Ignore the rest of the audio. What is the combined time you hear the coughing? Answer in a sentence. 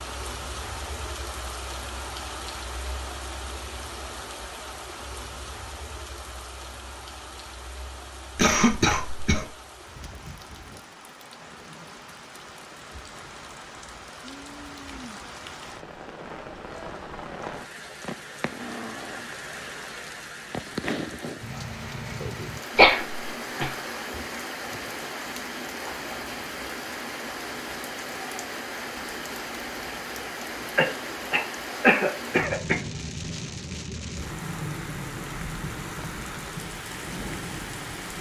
You can hear the coughing for 4 seconds altogether.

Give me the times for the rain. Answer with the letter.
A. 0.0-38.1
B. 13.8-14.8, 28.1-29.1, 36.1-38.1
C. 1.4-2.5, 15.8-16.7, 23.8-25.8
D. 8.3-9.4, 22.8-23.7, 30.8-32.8
A.